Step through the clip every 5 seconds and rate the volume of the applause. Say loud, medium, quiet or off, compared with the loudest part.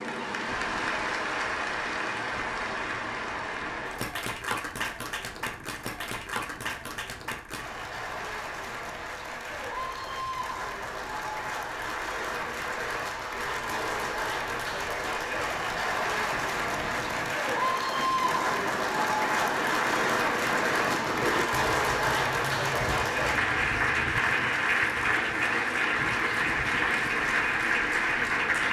medium, medium, medium, loud, loud, loud.